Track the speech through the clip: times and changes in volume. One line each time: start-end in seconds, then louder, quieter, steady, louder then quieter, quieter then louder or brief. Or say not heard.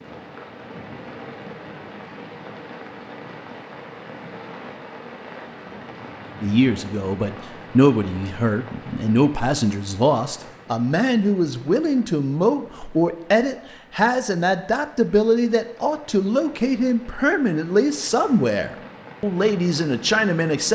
6.4-20.7 steady.